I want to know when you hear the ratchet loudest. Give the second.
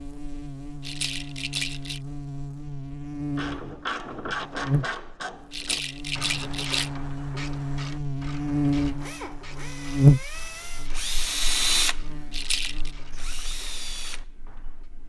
4 s.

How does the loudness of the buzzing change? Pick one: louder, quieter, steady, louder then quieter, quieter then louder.
louder then quieter.